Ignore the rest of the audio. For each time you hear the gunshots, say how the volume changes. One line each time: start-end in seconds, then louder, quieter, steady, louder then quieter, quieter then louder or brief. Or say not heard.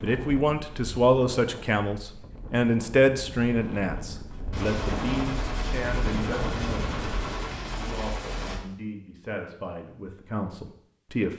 4.5-8.6 steady.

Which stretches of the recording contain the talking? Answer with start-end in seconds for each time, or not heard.
0.0-6.8, 7.8-11.3.